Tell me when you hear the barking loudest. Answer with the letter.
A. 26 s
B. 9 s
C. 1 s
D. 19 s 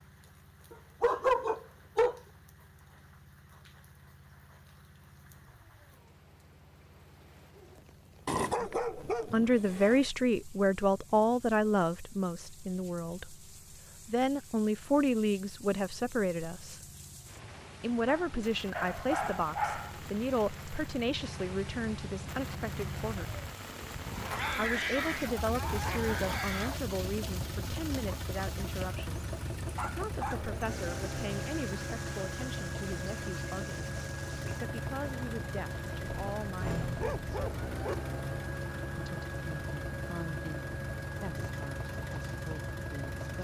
C.